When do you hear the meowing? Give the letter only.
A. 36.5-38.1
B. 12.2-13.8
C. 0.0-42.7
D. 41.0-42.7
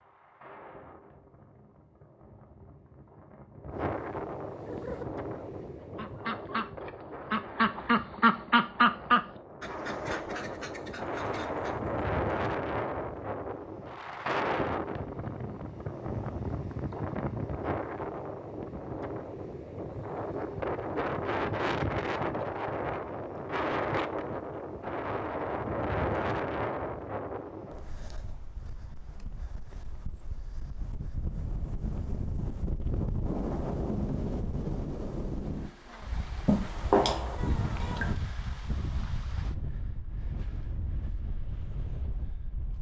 A.